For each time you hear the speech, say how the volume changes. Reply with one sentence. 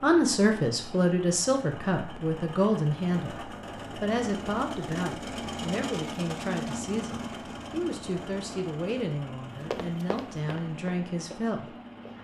The speech can be heard from 0.0 to 11.7 s, getting quieter.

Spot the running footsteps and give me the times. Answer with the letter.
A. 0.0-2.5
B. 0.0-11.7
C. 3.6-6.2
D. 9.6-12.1
D.